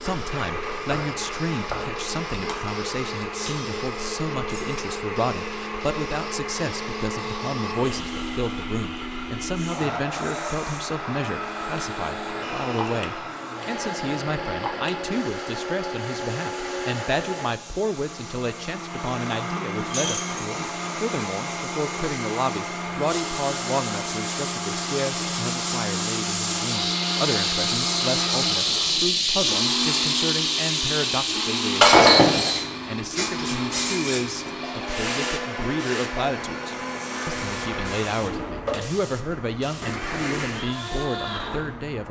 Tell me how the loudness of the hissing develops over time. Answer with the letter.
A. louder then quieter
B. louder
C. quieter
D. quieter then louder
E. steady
A.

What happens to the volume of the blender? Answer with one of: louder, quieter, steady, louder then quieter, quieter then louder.
steady.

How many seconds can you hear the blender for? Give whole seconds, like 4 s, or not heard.
42 s.